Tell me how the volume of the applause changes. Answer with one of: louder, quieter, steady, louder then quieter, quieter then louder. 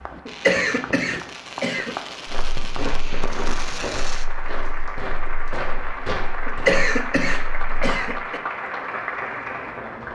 louder.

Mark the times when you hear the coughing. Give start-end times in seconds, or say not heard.
0.2-1.9, 6.5-8.4.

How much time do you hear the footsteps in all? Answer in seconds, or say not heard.
6 s.